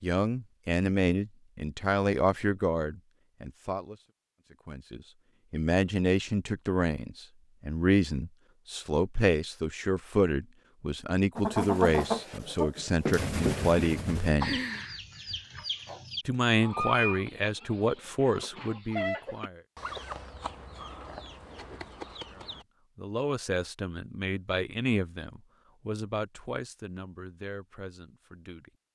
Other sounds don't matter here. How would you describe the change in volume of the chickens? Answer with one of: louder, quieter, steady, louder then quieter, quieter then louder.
quieter.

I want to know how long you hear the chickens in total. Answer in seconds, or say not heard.
11 s.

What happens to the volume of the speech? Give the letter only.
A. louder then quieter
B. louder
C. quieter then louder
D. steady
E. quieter
E.